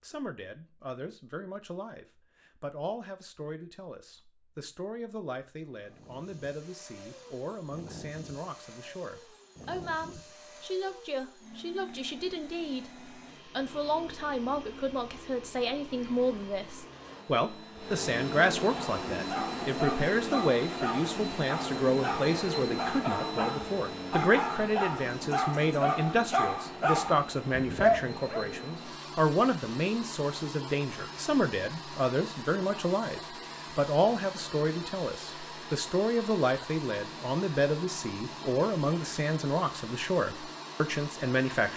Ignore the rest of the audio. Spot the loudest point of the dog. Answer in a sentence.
The loudest moment of the dog is at 28 seconds.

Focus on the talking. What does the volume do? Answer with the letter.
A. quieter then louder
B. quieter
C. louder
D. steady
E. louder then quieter
C.